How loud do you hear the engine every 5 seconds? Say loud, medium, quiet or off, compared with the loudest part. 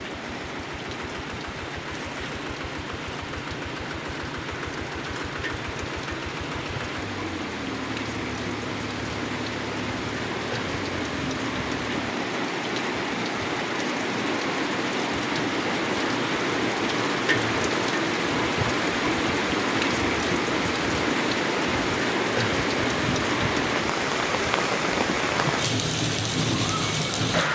loud, loud, loud, off, off, off.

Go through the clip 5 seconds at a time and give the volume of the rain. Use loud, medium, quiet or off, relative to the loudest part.
medium, medium, loud, loud, loud, loud.